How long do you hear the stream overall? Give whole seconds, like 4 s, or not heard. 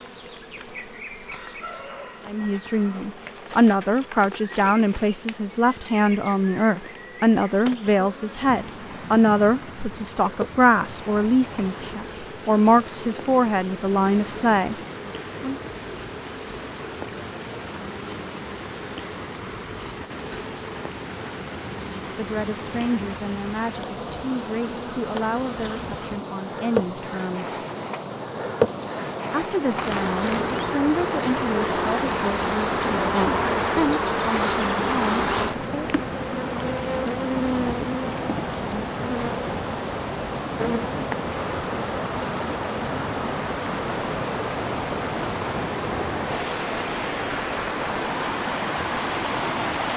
42 s.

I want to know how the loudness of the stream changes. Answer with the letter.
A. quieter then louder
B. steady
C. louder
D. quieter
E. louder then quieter
C.